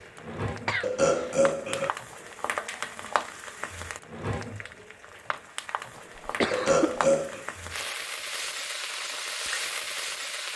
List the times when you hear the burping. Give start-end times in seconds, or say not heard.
0.8-1.9, 6.5-7.5.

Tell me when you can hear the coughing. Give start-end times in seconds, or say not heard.
0.7-1.4, 6.0-7.0.